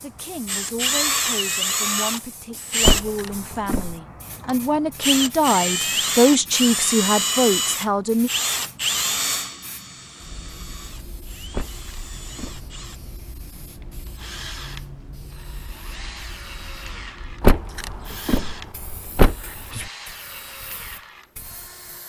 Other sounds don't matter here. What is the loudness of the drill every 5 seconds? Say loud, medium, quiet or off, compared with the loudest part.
loud, loud, quiet, quiet, quiet.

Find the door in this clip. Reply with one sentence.
You can hear the door from 2.8 to 4.0 s, from 11.5 to 12.7 s and from 17.4 to 19.9 s.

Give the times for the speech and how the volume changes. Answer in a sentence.
You can hear the speech from 0.0 to 8.3 s, getting louder.